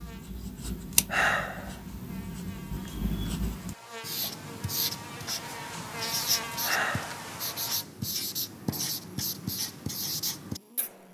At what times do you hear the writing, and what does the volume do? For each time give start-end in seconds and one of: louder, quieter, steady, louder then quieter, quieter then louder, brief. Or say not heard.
0.0-11.0 steady.